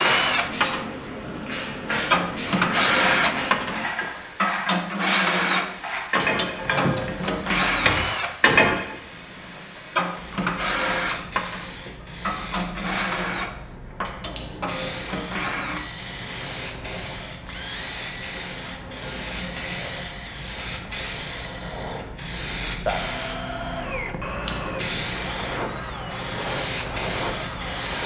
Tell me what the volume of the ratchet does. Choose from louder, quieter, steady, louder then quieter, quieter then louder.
louder.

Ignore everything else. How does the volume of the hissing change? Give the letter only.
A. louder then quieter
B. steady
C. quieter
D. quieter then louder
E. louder
D.